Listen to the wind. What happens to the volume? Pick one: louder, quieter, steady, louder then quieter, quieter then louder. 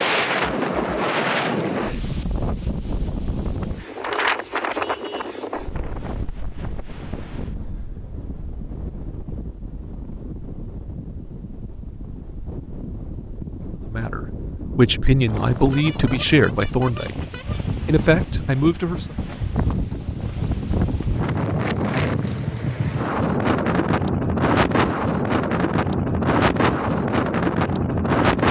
quieter then louder.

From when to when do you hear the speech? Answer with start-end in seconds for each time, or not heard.
13.8-17.1, 17.9-19.1.